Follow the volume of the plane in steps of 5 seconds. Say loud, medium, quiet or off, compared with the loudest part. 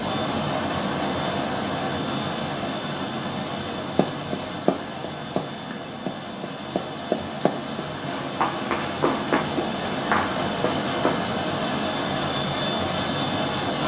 loud, medium, loud.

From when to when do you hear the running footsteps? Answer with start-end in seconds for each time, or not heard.
4.0-11.2.